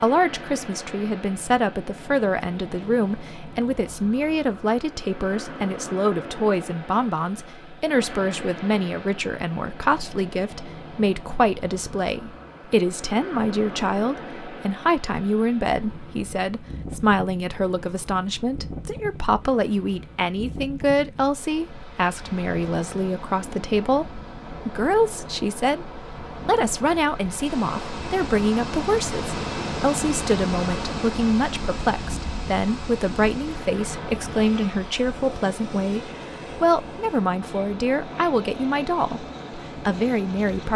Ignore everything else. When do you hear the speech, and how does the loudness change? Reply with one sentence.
The speech can be heard from 0.0 to 40.7 s, at a steady volume.